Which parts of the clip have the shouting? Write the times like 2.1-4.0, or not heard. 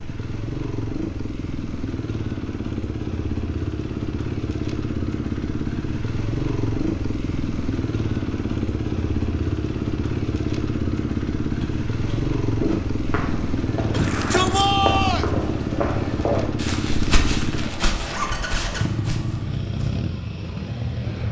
13.9-15.3.